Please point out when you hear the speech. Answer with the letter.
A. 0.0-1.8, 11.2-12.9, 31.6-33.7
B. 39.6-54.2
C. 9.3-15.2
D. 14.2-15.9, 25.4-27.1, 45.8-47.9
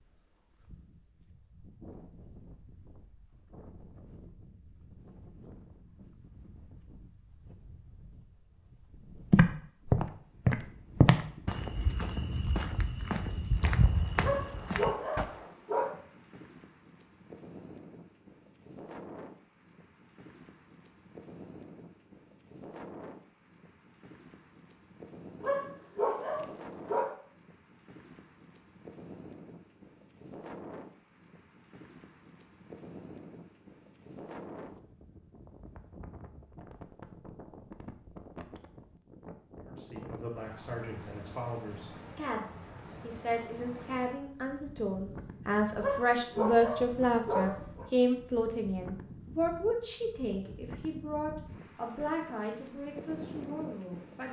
B.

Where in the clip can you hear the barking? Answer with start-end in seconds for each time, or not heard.
14.2-15.9, 25.4-27.1, 45.8-47.9.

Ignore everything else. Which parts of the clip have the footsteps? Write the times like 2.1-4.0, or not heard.
9.3-15.2.